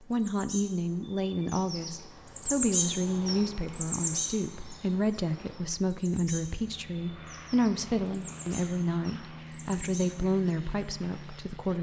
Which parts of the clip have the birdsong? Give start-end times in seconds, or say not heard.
0.0-11.4.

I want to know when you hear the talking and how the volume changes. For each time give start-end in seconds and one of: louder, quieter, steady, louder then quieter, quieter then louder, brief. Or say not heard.
0.0-11.7 steady.